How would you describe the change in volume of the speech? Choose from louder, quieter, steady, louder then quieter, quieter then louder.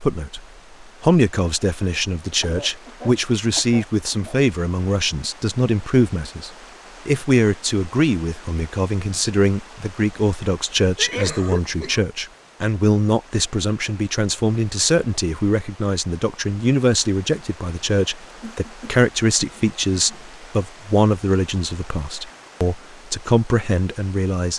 steady.